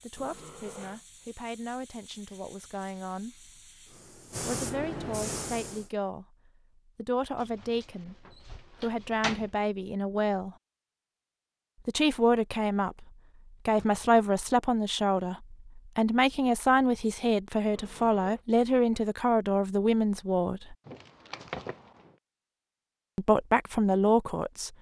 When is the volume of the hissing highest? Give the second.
5 s.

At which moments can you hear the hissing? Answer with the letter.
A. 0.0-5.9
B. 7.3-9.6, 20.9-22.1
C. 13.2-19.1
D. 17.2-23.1
A.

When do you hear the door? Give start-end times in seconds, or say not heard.
7.3-9.6, 20.9-22.1.